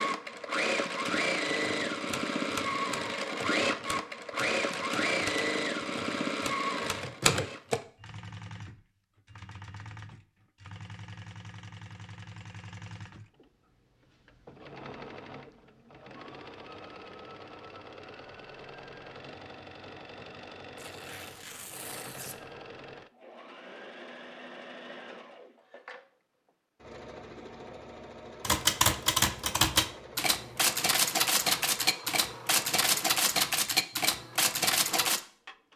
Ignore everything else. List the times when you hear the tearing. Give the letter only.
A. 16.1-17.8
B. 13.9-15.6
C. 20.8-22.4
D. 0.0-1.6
C.